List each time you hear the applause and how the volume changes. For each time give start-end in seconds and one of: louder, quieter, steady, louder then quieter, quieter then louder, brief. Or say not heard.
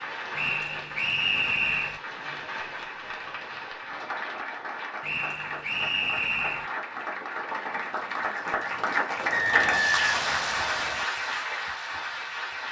0.0-12.6 louder.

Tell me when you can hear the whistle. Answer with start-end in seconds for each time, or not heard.
0.3-2.0, 5.0-6.7, 9.3-11.1.